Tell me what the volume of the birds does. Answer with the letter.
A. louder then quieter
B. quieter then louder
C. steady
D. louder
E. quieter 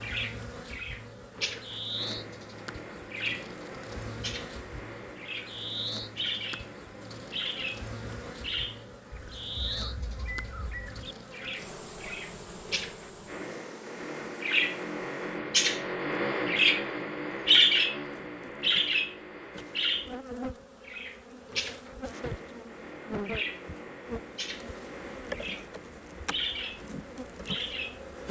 A.